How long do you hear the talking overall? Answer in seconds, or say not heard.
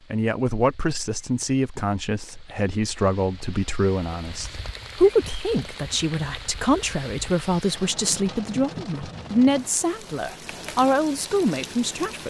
12 s.